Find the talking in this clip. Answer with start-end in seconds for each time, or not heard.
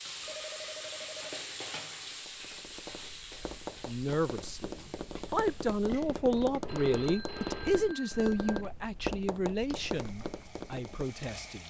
3.9-11.6.